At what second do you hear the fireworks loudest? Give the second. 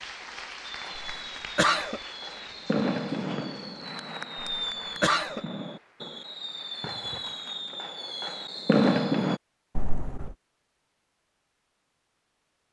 9 s.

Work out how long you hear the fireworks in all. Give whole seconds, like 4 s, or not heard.
9 s.